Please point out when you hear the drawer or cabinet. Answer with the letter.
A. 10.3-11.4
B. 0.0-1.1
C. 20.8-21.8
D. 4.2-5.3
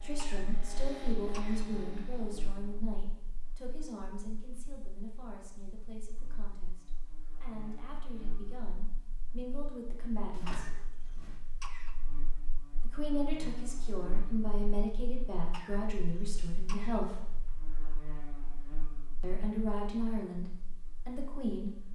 A.